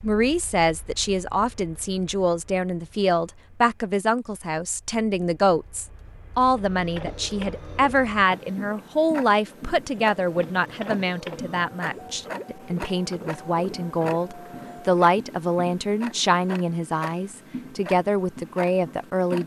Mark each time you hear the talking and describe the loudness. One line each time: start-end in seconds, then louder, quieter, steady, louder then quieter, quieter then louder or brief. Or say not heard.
0.0-19.4 steady.